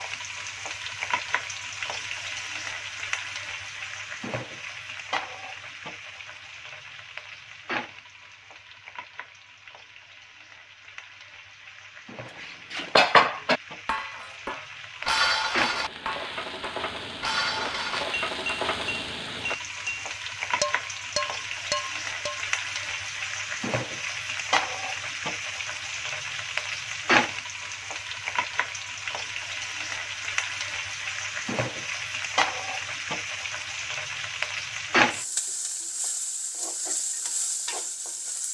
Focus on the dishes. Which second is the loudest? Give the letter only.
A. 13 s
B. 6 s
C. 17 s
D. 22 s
A.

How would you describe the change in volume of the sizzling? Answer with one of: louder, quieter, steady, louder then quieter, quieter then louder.
quieter then louder.